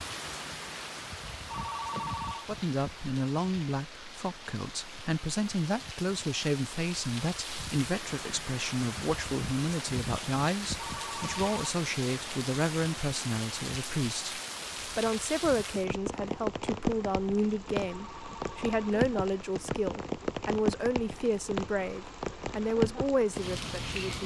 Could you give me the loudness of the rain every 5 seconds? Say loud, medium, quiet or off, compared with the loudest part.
medium, medium, loud, loud, loud.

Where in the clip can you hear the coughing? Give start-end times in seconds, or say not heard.
not heard.